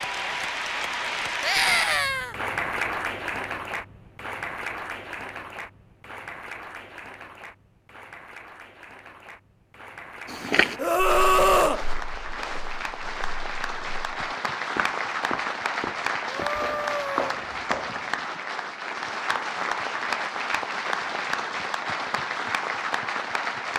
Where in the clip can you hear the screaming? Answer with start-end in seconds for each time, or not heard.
1.4-2.4, 10.8-11.8, 16.2-17.2.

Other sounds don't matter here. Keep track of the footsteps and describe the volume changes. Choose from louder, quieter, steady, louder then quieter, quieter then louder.
quieter then louder.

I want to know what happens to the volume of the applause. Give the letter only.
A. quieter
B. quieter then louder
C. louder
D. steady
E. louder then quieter
B.